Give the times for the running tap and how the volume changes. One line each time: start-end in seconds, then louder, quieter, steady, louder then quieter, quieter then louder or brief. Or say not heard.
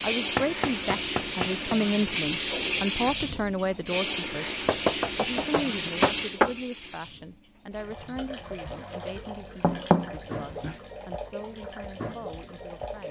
0.0-13.0 quieter.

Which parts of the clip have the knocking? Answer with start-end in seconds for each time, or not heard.
0.3-1.8, 4.7-6.5, 9.6-10.8.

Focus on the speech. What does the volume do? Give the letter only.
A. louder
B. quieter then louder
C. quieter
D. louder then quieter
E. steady
C.